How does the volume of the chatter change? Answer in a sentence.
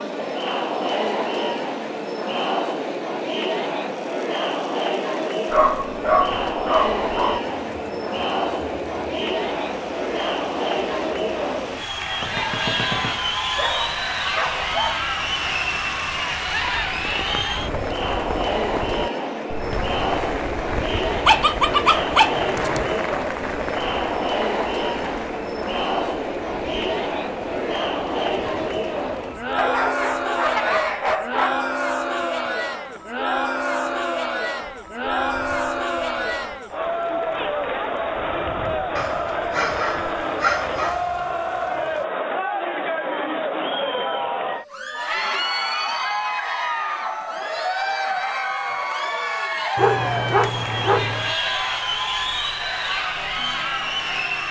The volume of the chatter stays about the same.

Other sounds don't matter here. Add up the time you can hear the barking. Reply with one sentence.
The barking can be heard for 12 seconds in total.